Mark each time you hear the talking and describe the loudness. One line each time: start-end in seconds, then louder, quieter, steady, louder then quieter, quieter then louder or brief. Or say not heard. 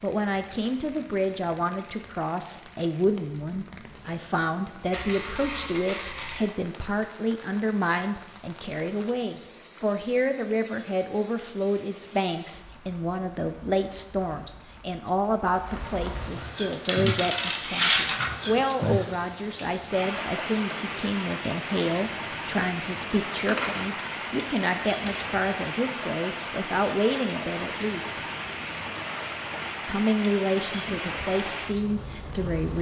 0.0-28.2 steady
29.9-32.7 brief.